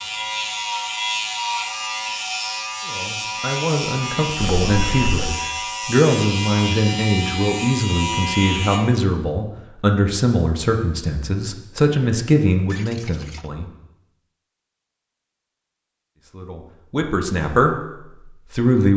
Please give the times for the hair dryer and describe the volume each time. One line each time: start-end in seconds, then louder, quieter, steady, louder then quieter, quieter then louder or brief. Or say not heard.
not heard.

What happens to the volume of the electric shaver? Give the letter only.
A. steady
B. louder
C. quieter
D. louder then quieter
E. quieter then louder
A.